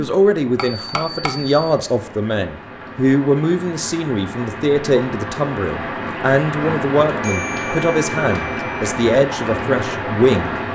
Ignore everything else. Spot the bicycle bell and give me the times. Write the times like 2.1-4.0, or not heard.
0.6-1.6, 7.2-8.8.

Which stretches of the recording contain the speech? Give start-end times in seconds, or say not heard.
0.0-10.6.